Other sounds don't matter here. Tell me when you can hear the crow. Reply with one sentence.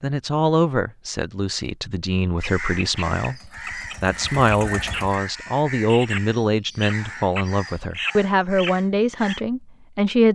The crow can be heard from 2.4 to 9.4 s.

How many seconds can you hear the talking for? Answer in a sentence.
The talking can be heard for 10 seconds in total.